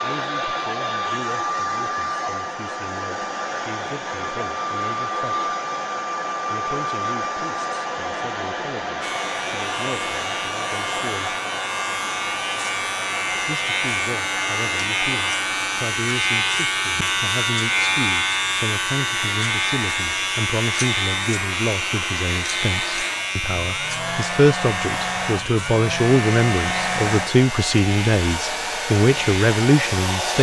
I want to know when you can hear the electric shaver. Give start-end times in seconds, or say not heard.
9.0-30.3.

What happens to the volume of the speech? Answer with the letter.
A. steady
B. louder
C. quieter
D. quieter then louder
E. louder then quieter
B.